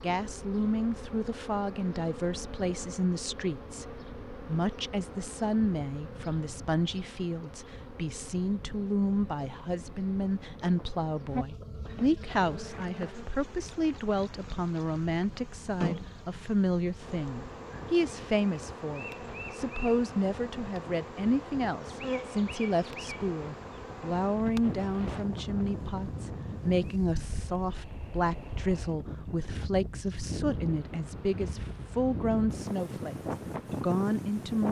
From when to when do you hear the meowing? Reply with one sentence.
You can't hear the meowing here.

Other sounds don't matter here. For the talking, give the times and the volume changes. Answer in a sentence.
You can hear the talking from 0.0 to 34.6 s, at a steady volume.